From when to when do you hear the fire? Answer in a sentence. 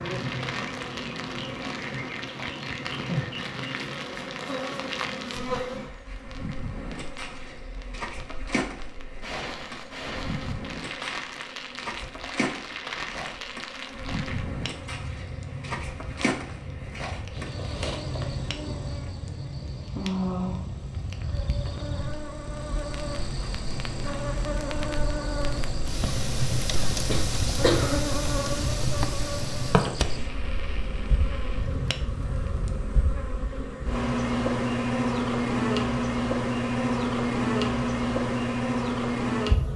You can hear the fire from 0.0 to 32.9 s.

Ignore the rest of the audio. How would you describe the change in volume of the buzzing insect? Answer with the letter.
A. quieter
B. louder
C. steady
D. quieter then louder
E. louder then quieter
B.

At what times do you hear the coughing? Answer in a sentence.
You can hear the coughing from 26.9 to 28.1 s.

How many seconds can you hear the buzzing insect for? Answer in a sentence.
You can hear the buzzing insect for 40 seconds altogether.